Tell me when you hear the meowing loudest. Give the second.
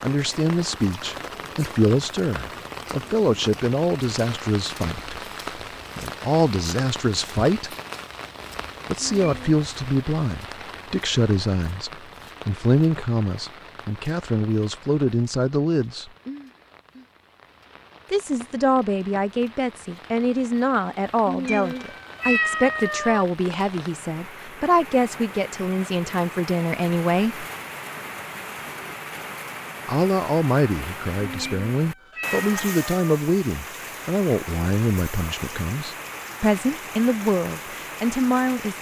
22 s.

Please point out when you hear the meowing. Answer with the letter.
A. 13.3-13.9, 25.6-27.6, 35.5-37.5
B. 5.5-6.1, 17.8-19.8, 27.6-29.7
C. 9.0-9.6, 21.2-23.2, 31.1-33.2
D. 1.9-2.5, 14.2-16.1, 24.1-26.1
C.